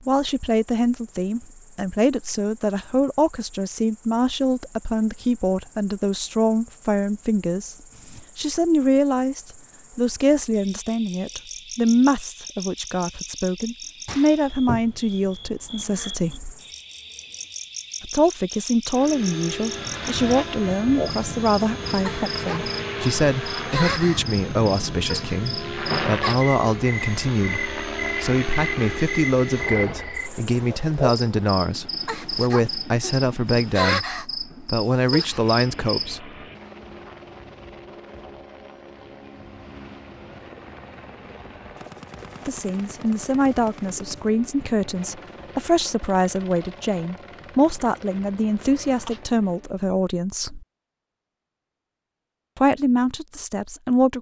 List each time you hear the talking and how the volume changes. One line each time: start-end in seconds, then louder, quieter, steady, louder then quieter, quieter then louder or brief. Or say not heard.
0.1-16.6 steady
18.0-36.3 steady
42.5-50.6 steady
52.5-54.1 brief.